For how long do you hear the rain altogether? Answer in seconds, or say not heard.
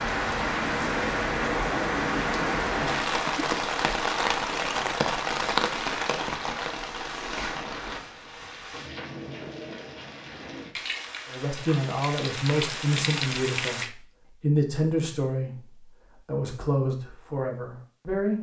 14 s.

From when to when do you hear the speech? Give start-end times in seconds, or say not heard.
11.3-18.3.